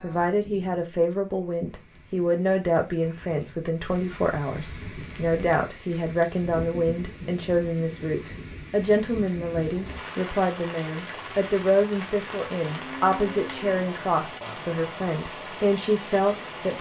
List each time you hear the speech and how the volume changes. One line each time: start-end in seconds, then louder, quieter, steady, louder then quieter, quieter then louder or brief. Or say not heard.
0.0-16.7 steady.